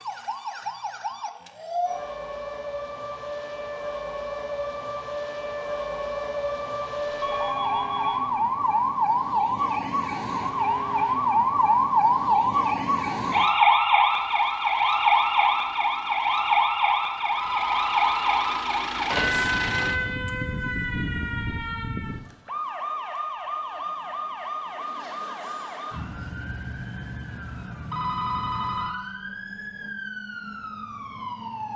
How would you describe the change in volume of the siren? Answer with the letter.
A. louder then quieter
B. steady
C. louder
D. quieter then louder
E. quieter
A.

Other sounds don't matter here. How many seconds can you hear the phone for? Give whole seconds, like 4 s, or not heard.
4 s.